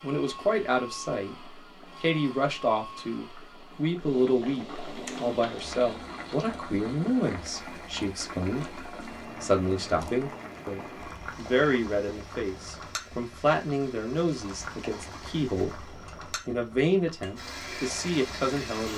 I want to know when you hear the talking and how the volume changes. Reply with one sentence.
You can hear the talking from 0.0 to 18.9 s, at a steady volume.